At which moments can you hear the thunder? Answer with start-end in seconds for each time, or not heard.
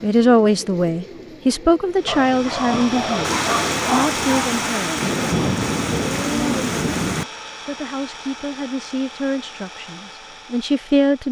3.2-7.2.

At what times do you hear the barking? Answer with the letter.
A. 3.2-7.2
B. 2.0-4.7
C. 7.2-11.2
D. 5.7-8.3
B.